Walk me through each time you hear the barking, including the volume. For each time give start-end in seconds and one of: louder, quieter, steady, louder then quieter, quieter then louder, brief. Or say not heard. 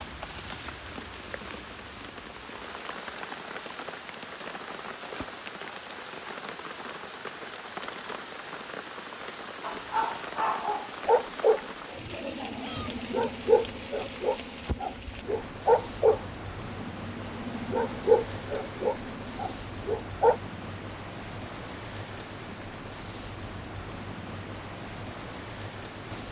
9.6-20.4 steady.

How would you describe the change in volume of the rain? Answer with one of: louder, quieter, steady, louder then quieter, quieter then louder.
steady.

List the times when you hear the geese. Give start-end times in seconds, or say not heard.
not heard.